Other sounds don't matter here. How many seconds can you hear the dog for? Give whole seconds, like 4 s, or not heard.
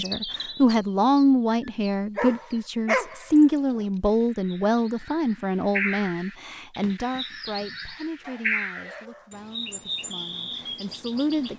4 s.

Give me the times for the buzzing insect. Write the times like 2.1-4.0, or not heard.
not heard.